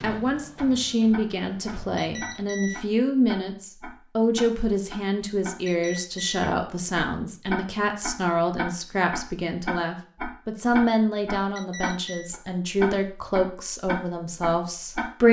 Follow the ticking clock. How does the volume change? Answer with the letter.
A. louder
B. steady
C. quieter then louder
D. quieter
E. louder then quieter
A.